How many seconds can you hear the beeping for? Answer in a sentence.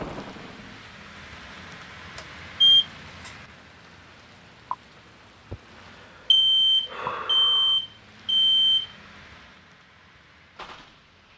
The beeping can be heard for 4 seconds in total.